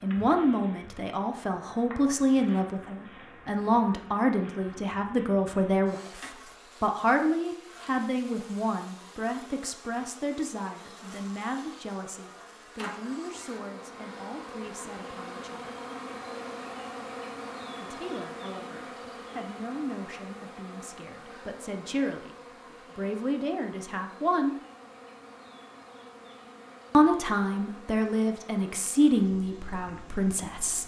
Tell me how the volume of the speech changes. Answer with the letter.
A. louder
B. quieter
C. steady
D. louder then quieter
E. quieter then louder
E.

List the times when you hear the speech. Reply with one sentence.
You can hear the speech from 0.0 to 15.8 s, from 17.8 to 24.6 s and from 26.9 to 30.8 s.